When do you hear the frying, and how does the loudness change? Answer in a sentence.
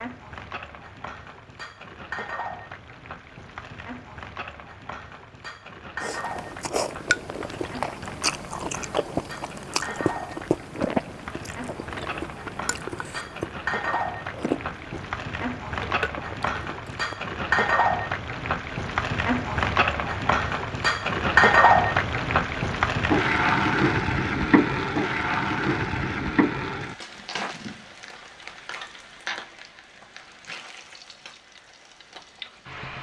You can hear the frying from 0.0 to 32.9 s, getting louder then quieter.